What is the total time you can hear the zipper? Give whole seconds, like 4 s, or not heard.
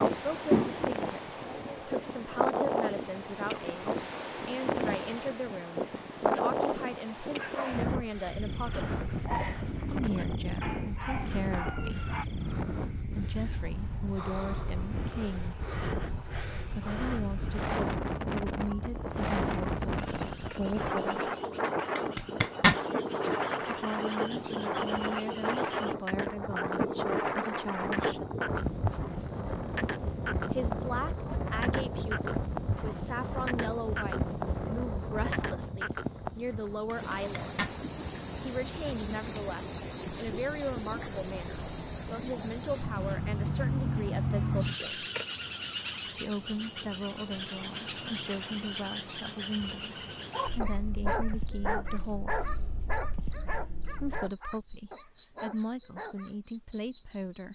2 s.